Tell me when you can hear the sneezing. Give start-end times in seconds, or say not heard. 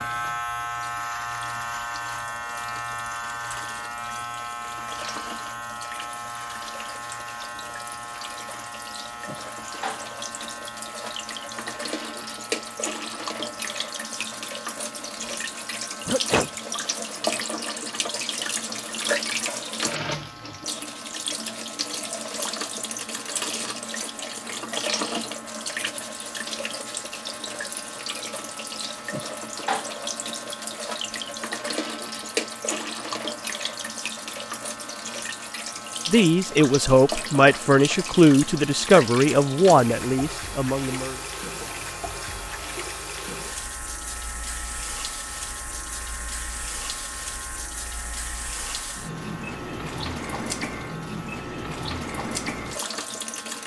16.1-16.5.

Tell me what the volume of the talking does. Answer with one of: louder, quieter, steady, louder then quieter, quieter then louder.
quieter.